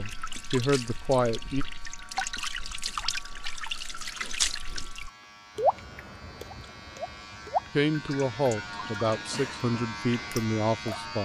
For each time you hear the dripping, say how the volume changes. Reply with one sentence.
The dripping can be heard from 0.0 to 11.1 s, getting louder then quieter.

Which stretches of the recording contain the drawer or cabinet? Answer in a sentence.
The drawer or cabinet can't be heard in this clip.